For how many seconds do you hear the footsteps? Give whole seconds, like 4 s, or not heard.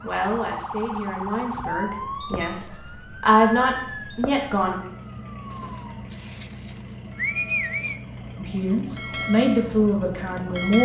not heard.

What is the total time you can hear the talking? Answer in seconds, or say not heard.
7 s.